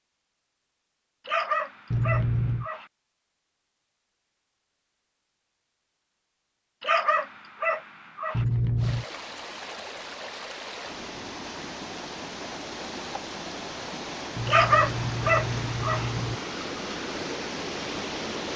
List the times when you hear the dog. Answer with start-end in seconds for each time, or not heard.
1.2-2.9, 6.8-8.4, 14.4-16.1.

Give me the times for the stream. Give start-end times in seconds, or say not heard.
8.8-18.5.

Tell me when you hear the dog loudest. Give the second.
15 s.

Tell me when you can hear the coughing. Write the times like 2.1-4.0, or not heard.
not heard.